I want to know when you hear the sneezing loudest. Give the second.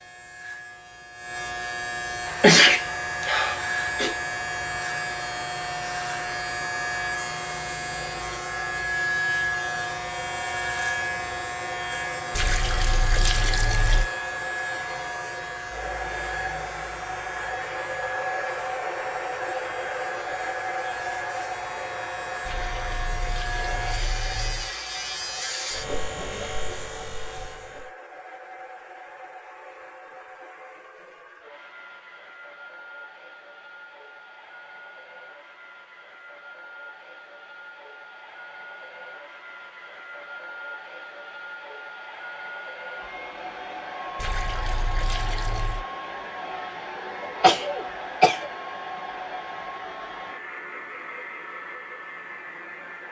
3 s.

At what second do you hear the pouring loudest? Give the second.
13 s.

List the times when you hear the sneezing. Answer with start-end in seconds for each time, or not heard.
2.4-4.2, 47.2-48.5.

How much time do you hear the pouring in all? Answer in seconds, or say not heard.
6 s.